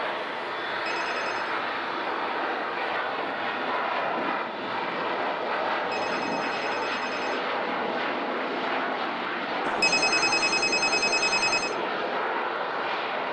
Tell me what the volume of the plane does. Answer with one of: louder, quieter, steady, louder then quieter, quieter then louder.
steady.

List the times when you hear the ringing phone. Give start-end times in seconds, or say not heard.
0.7-1.6, 5.8-7.4, 9.7-11.8.